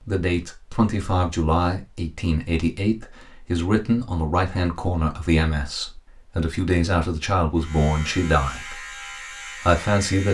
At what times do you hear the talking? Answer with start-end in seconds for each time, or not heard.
0.1-8.9, 9.6-10.2.